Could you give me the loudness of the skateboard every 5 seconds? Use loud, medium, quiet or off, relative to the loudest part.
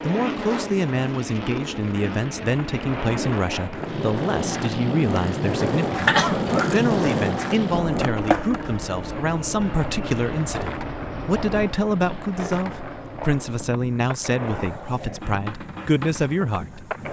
medium, loud, medium, medium.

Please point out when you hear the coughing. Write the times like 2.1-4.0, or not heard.
6.0-6.8.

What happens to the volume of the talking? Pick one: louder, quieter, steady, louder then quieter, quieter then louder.
steady.